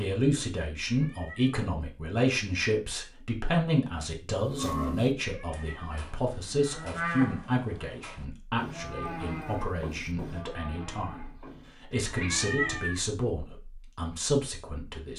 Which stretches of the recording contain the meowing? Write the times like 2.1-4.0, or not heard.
0.8-1.6, 5.2-6.0, 12.2-13.0.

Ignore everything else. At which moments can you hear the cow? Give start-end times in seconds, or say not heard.
4.5-12.9.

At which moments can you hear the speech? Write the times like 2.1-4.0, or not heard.
0.0-15.1.